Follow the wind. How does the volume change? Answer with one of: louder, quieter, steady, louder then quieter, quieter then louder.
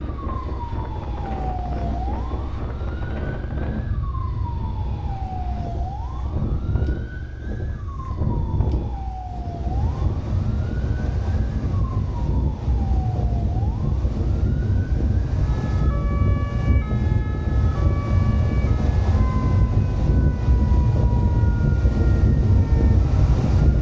louder.